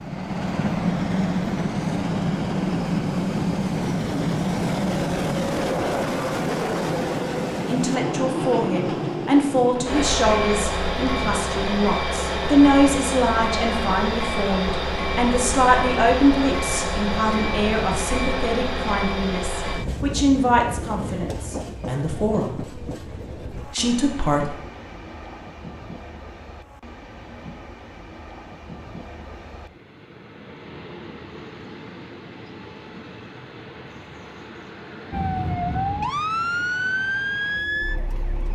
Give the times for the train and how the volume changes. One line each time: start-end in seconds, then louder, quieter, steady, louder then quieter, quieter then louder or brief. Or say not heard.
0.0-38.5 quieter.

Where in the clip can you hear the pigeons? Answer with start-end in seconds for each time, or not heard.
not heard.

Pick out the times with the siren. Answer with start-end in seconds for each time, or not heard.
35.1-38.5.